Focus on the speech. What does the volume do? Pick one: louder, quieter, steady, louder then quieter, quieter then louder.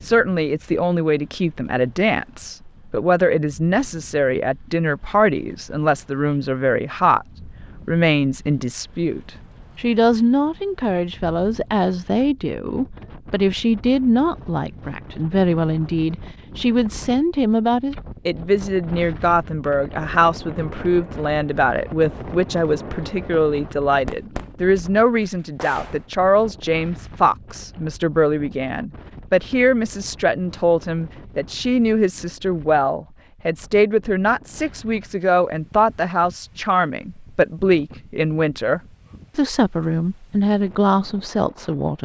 steady.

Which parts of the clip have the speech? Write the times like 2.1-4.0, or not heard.
0.0-7.2, 7.8-42.0.